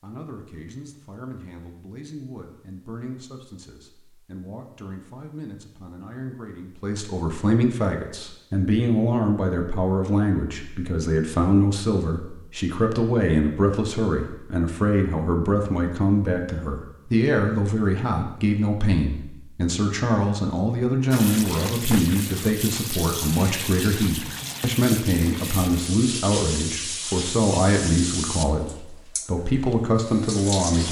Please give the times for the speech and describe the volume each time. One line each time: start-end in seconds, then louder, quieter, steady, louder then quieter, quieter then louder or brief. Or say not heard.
0.0-30.8 louder.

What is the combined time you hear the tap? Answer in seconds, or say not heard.
10 s.